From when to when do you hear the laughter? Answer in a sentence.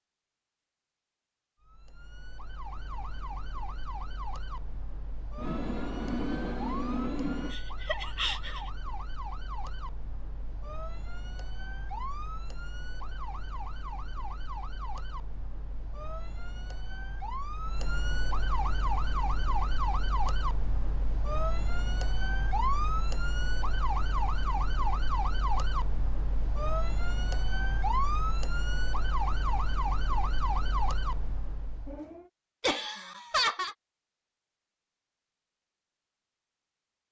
The laughter can be heard from 7.5 to 8.6 s and from 32.6 to 33.8 s.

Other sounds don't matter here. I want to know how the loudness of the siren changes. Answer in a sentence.
The volume of the siren goes up.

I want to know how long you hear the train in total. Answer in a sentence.
The train can be heard for 2 seconds in total.